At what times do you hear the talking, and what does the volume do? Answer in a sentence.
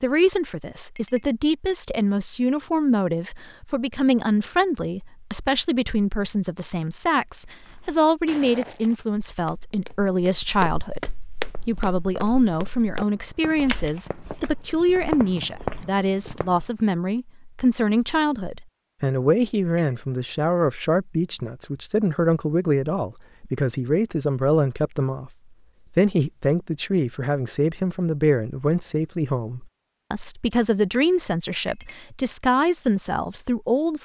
The talking can be heard from 0.0 to 25.3 s, at a steady volume; and from 25.9 to 34.0 s, at a steady volume.